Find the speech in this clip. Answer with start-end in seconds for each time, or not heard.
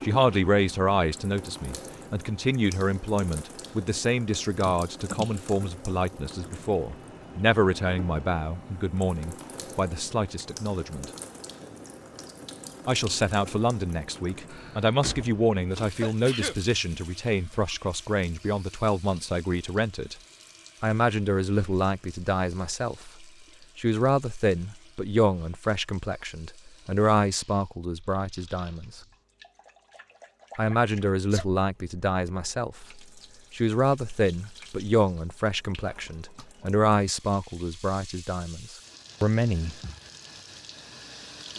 0.0-11.1, 12.8-20.1, 20.8-29.0, 30.6-39.8.